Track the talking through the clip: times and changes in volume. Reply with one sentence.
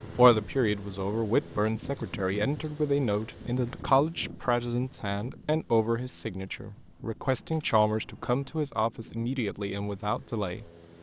The talking can be heard from 0.0 to 10.7 s, at a steady volume.